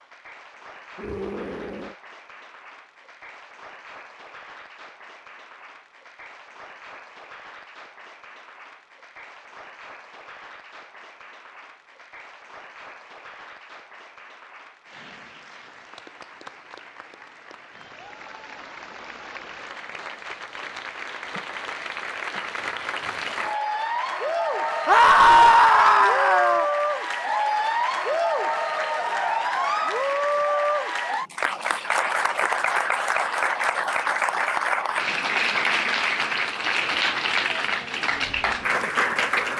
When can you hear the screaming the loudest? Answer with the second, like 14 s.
25 s.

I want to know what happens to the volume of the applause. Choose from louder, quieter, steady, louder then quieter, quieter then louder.
louder.